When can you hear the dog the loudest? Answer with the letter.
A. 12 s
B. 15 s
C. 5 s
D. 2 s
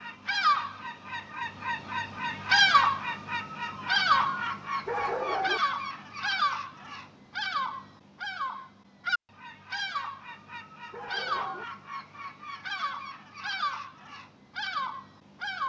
C.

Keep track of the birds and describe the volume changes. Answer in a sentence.
The loudness of the birds goes down.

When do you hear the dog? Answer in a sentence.
You can hear the dog from 4.8 to 5.6 s and from 10.9 to 11.7 s.